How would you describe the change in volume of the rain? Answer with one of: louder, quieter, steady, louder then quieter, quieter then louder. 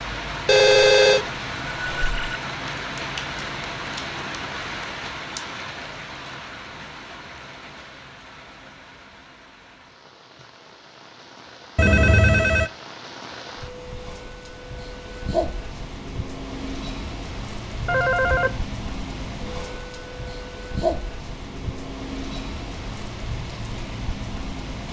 quieter then louder.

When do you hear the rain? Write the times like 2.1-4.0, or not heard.
0.0-24.8.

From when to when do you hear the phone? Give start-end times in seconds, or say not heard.
0.5-2.4, 11.8-12.7, 17.9-18.5.